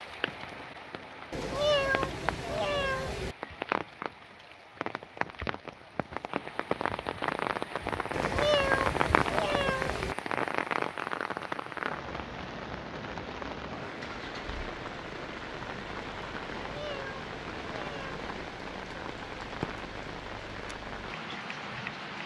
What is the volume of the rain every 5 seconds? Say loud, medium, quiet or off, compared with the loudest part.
medium, loud, loud, medium, medium.